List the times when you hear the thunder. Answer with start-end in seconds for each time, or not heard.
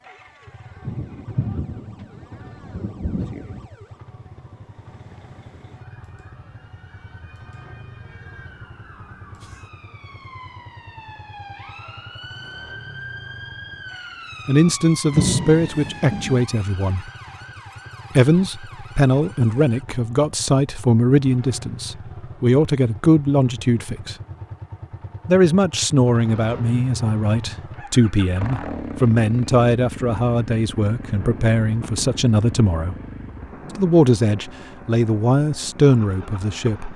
0.8-3.6, 15.1-16.4, 30.8-34.0.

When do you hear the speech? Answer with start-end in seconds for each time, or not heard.
14.4-17.1, 18.1-24.1, 25.2-33.0, 33.8-36.9.